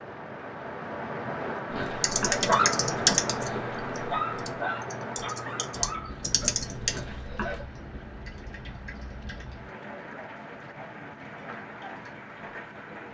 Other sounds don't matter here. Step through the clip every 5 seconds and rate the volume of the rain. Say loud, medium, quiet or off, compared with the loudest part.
loud, medium, medium.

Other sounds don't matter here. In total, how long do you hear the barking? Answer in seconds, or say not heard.
6 s.